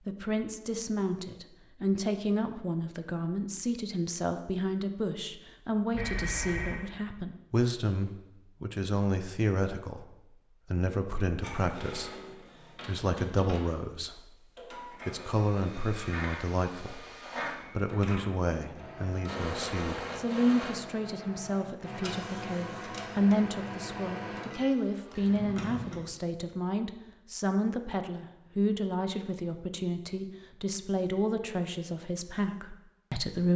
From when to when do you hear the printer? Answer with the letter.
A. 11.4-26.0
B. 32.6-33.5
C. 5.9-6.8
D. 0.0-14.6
A.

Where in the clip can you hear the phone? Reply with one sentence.
You can hear the phone from 5.9 to 6.8 s.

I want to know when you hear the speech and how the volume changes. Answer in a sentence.
The speech can be heard from 0.1 to 10.1 s, at a steady volume; briefly from 10.7 to 12.2 s; briefly from 12.8 to 14.2 s; briefly from 15.1 to 17.1 s; and from 17.8 to 33.5 s, at a steady volume.